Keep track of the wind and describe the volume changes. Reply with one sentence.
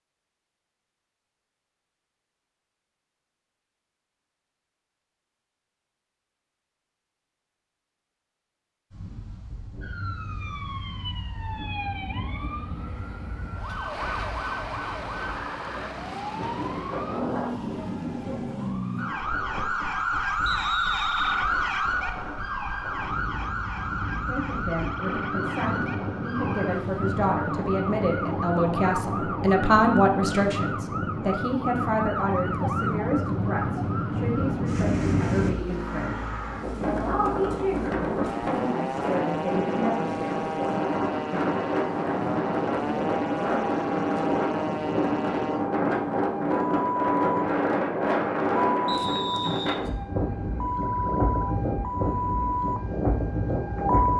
The loudness of the wind goes up.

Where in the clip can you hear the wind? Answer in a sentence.
You can hear the wind from 8.9 to 54.1 s.